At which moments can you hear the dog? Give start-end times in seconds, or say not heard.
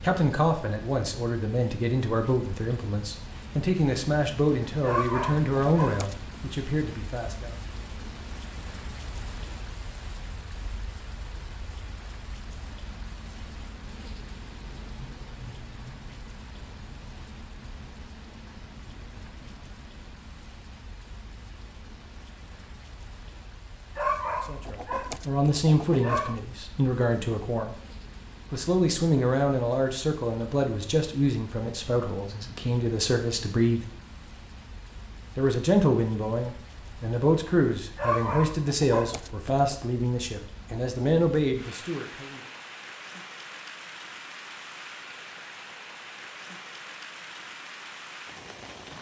4.8-6.3, 23.9-26.4, 38.0-39.7.